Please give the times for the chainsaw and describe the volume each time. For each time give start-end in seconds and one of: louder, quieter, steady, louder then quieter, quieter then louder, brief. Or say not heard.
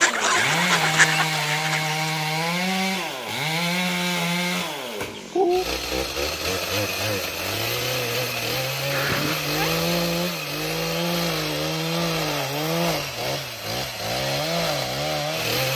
0.0-15.7 steady.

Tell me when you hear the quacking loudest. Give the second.
1 s.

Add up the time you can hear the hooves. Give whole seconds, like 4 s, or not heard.
not heard.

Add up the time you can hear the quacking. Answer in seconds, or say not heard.
2 s.